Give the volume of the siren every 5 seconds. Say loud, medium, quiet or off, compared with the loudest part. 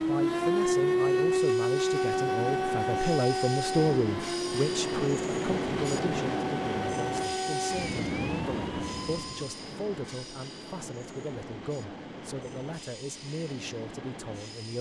loud, medium, off.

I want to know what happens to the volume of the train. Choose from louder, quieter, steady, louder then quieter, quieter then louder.
louder then quieter.